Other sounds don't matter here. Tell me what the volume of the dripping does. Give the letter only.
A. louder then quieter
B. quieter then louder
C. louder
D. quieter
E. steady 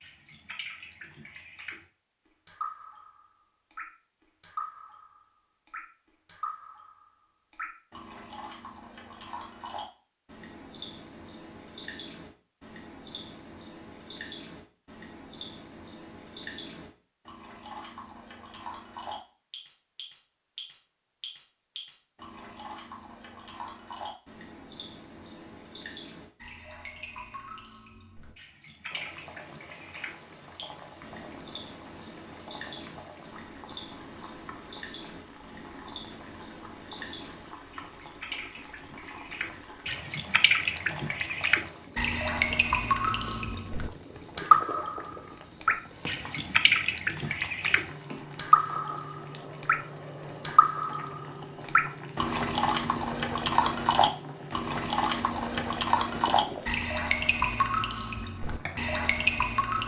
C.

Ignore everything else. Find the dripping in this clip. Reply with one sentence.
You can hear the dripping from 0.0 to 59.8 s.